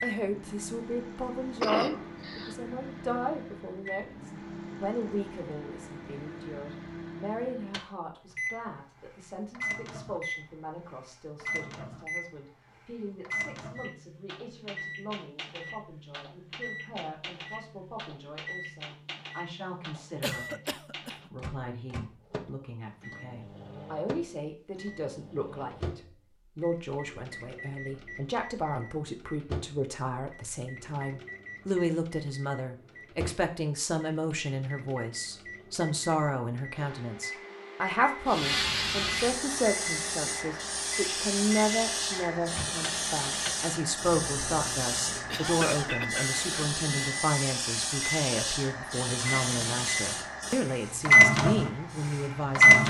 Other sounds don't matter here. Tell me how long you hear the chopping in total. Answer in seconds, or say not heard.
not heard.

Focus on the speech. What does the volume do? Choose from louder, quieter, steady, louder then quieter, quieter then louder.
quieter then louder.